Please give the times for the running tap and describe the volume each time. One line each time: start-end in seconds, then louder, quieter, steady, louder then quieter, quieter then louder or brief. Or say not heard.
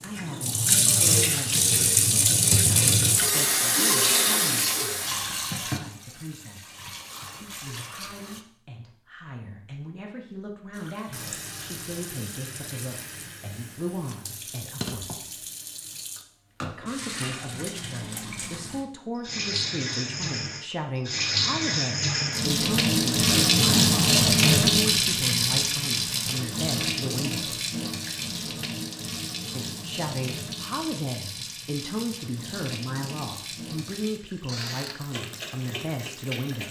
0.0-8.4 quieter
10.7-36.6 louder then quieter.